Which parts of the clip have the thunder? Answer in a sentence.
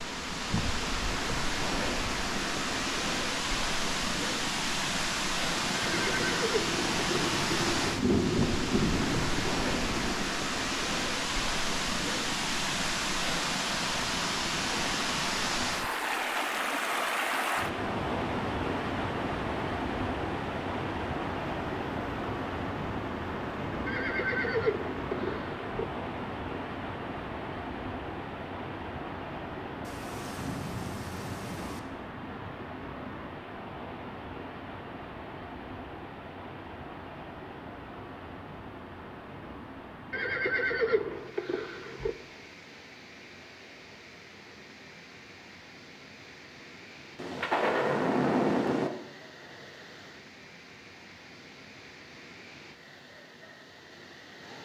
The thunder can be heard from 5.5 to 10.2 s, from 29.8 to 31.8 s and from 47.1 to 48.9 s.